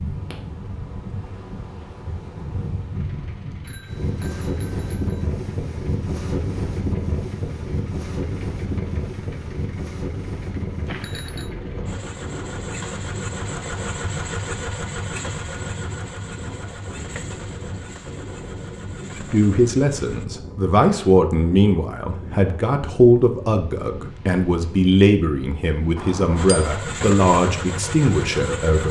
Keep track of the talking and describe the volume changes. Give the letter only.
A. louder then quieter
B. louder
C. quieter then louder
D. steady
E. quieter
D.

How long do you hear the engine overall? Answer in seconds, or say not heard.
20 s.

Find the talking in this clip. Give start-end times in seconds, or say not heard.
19.1-28.8.